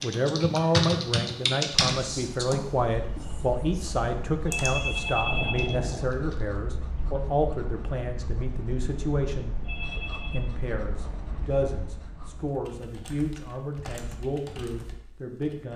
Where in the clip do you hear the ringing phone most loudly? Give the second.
5 s.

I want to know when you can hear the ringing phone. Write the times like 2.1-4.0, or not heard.
4.5-5.8, 9.7-10.5.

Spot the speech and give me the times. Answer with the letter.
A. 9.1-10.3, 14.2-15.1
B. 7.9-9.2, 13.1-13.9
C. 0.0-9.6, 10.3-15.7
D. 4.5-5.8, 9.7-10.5
C.